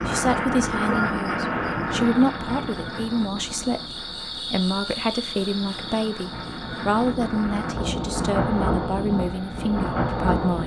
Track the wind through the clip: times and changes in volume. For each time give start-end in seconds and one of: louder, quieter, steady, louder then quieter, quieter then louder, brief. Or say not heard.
0.0-10.6 quieter then louder.